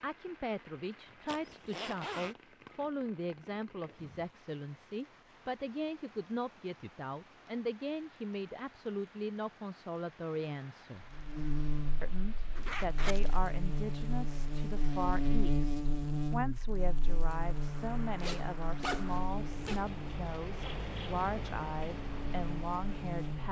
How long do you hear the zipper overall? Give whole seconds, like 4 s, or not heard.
4 s.